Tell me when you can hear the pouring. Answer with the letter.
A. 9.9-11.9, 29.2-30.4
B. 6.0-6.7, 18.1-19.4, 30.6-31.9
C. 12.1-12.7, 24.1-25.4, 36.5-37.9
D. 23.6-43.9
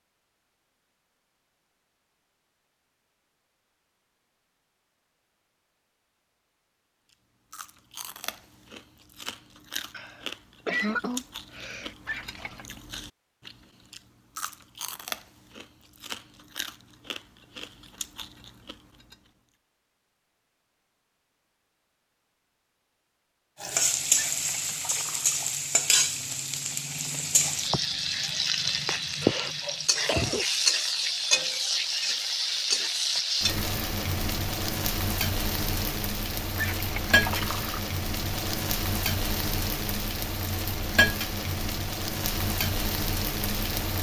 C.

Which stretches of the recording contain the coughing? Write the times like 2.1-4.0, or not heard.
9.9-11.9, 29.2-30.4.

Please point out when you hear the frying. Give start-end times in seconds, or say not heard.
23.6-43.9.